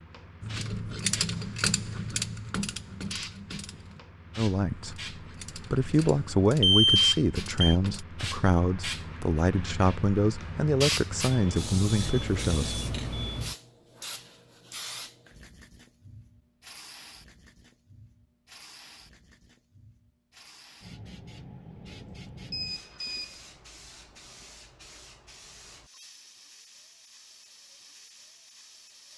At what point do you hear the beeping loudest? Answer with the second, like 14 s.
7 s.